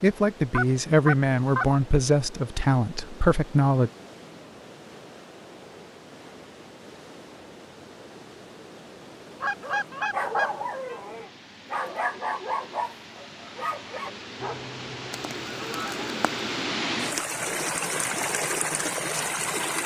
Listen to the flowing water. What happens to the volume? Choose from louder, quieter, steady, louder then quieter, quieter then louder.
louder.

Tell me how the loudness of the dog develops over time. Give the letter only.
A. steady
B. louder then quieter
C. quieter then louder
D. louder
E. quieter
E.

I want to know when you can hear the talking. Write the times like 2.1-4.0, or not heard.
0.0-3.9.